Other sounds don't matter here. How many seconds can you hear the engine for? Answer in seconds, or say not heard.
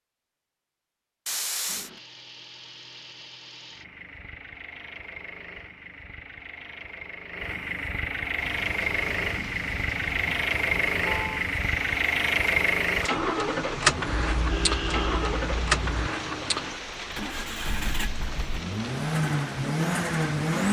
19 s.